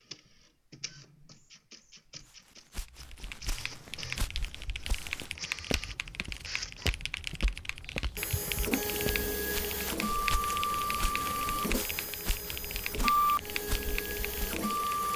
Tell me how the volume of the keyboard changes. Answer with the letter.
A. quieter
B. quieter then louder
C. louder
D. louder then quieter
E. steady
E.